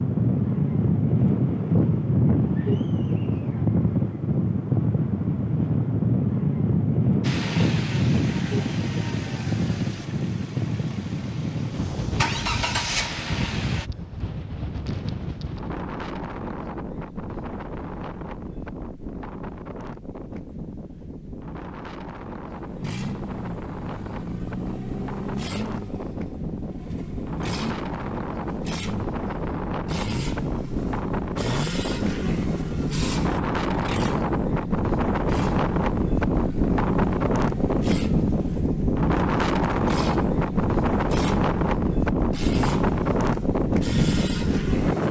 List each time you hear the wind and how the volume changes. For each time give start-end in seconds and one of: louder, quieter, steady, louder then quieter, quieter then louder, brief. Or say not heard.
0.0-45.0 quieter then louder.